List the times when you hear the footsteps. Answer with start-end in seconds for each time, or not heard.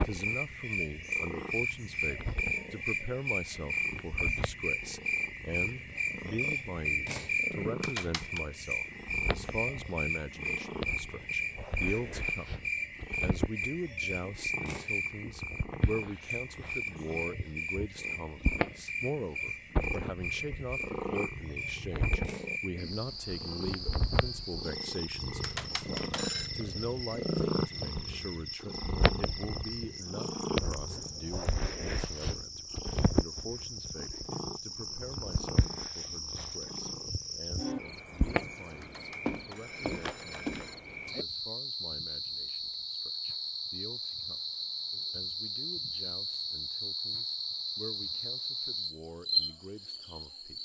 not heard.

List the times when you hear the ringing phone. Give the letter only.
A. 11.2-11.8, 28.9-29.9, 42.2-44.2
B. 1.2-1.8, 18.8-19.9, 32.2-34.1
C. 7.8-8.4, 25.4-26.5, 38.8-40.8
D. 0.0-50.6
C.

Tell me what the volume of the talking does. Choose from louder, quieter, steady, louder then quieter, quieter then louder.
quieter.